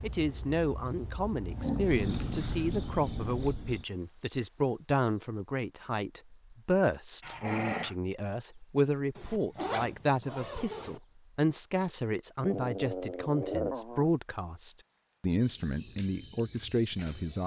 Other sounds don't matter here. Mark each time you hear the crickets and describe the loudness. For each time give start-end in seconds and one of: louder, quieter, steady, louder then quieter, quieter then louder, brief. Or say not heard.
0.0-17.4 quieter.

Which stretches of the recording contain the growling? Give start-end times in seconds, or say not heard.
1.5-3.5, 7.2-8.0, 12.4-14.1.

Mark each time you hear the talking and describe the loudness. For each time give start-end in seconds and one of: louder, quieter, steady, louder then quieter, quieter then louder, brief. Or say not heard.
0.0-17.4 steady.